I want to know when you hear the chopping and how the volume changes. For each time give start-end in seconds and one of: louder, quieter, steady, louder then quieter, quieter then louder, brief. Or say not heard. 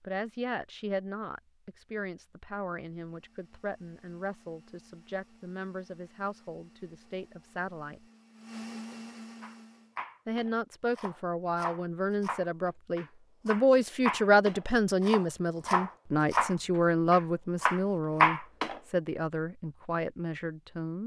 9.4-18.8 louder.